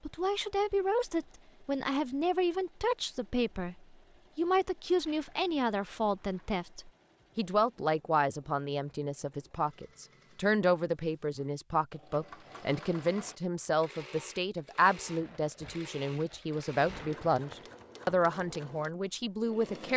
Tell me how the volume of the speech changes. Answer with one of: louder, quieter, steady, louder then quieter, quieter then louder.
steady.